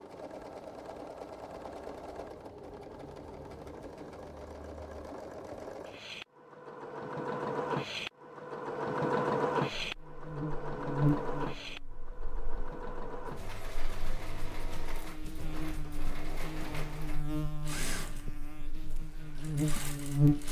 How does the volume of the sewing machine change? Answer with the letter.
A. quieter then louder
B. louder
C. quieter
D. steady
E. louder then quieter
E.